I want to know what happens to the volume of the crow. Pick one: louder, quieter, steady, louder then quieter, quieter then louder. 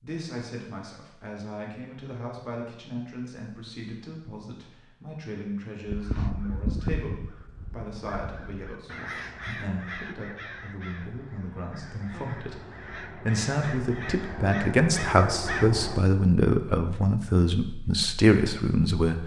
quieter then louder.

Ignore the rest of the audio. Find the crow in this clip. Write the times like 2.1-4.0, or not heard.
5.8-16.1.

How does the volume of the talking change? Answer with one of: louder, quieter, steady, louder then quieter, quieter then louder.
louder.